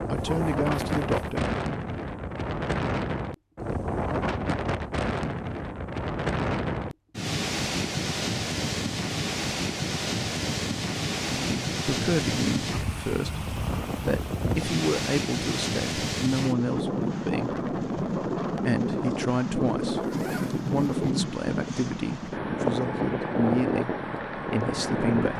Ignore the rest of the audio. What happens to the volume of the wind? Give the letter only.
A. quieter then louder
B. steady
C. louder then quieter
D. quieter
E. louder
B.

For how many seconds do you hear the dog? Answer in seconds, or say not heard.
not heard.